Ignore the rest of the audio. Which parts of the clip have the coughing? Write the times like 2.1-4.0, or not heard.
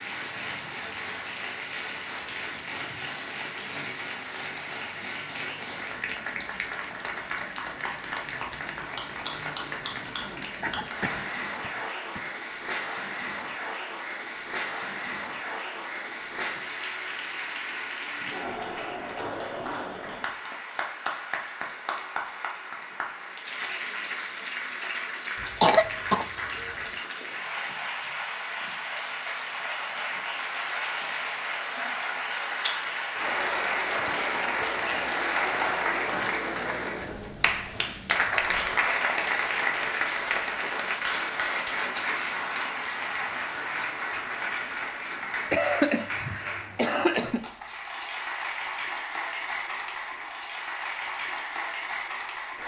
10.6-12.2, 25.4-26.7, 45.5-47.5.